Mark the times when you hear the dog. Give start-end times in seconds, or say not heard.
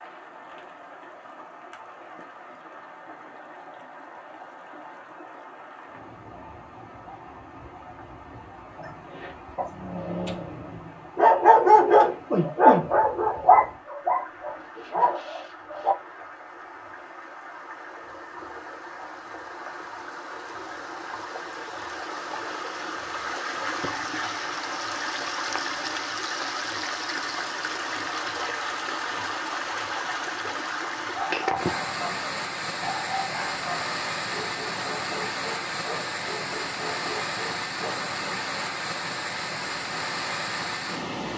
8.8-15.9, 31.1-38.0.